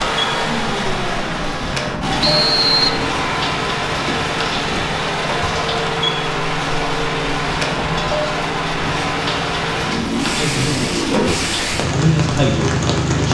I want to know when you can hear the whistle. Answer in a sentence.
The whistle can be heard from 2.2 to 3.0 s.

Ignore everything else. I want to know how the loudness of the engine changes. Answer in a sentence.
The loudness of the engine stays about the same.